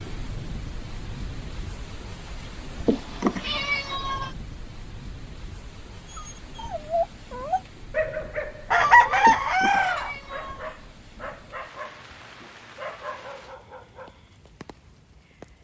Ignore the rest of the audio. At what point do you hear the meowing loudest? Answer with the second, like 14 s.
3 s.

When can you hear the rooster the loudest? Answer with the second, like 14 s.
9 s.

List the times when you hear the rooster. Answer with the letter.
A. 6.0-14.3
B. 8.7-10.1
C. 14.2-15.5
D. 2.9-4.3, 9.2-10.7
B.